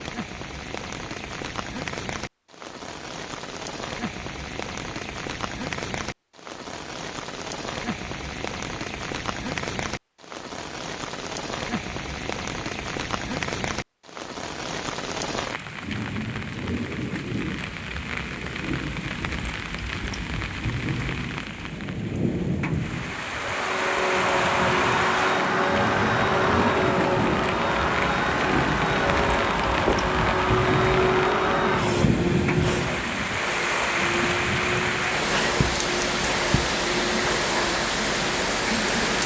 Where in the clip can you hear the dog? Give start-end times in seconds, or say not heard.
not heard.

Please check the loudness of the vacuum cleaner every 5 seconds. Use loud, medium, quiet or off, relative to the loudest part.
off, off, off, off, loud, loud, loud, medium.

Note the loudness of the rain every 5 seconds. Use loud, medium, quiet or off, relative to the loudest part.
medium, medium, medium, medium, loud, loud, loud, loud.